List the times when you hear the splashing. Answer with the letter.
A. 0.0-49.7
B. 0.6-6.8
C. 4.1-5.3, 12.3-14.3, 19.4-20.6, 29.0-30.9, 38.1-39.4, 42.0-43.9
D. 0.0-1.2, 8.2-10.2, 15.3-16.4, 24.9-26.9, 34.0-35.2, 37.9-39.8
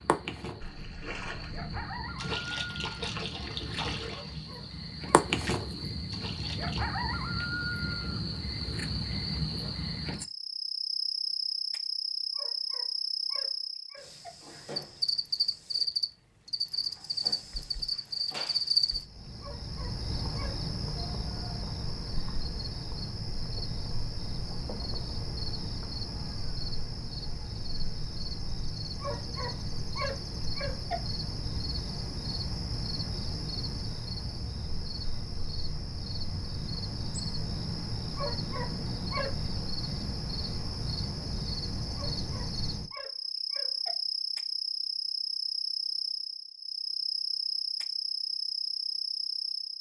B.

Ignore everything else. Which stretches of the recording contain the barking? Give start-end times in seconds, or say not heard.
4.1-5.3, 12.3-14.3, 19.4-20.6, 29.0-30.9, 38.1-39.4, 42.0-43.9.